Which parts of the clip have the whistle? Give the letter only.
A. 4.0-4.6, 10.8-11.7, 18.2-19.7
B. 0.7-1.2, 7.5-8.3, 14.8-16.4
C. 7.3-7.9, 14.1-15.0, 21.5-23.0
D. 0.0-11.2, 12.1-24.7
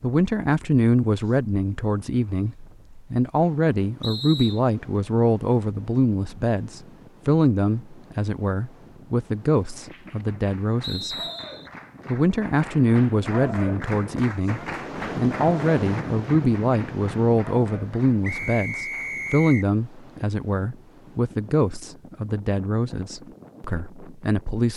A.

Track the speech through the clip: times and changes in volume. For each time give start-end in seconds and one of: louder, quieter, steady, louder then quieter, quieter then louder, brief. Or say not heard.
0.0-11.2 steady
12.1-24.7 quieter.